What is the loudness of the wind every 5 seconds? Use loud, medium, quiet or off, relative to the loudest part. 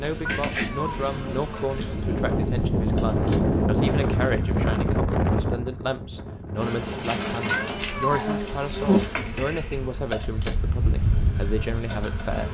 loud, medium, medium.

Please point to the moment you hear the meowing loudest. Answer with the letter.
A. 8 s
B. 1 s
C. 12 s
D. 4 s
A.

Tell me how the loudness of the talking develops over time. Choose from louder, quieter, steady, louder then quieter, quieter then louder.
steady.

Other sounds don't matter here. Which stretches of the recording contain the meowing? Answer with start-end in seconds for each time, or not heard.
0.2-1.0, 7.5-8.2.